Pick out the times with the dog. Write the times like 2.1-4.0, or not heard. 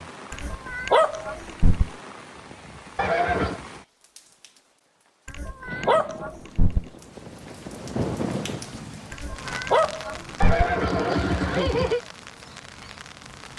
0.3-1.9, 5.2-6.8, 9.1-10.7.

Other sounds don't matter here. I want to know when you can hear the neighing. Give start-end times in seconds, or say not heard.
3.0-3.6, 10.4-12.0.